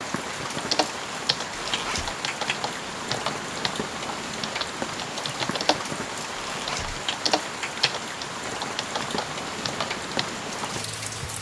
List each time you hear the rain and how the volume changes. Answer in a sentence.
The rain can be heard from 0.0 to 11.3 s, at a steady volume.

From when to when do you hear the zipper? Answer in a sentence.
You can hear the zipper from 1.5 to 2.1 s and from 6.3 to 7.0 s.